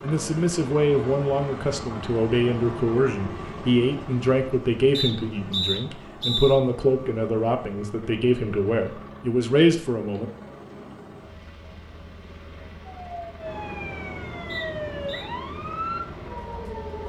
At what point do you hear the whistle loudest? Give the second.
6 s.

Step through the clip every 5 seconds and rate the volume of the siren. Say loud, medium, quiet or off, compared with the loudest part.
off, off, loud, loud.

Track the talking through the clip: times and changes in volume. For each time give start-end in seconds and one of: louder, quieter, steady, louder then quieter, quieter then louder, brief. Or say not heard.
0.0-10.3 steady.